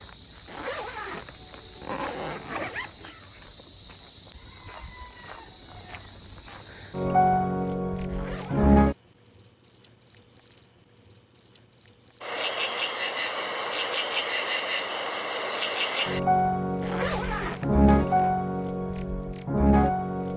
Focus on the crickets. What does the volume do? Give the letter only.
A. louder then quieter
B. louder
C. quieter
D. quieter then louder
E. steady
E.